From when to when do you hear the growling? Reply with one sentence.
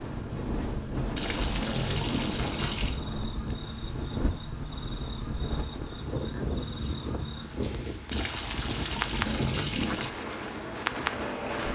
The growling can be heard from 1.4 to 2.4 s and from 9.1 to 10.2 s.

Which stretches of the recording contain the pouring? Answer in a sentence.
The pouring can be heard from 1.1 to 3.0 s and from 8.1 to 10.1 s.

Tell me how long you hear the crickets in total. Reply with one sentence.
The crickets can be heard for 12 seconds in total.